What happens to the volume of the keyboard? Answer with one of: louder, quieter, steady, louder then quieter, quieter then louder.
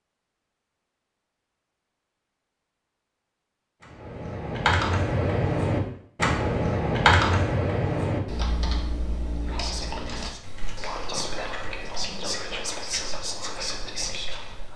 quieter.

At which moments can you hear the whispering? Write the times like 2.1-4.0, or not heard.
9.3-14.7.